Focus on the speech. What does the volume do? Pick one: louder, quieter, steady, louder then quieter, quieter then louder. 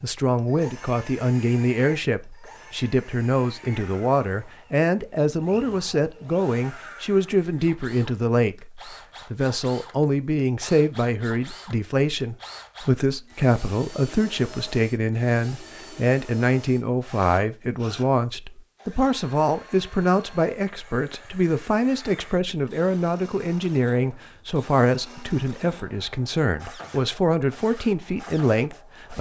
steady.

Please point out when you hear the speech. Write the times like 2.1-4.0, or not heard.
0.0-29.1.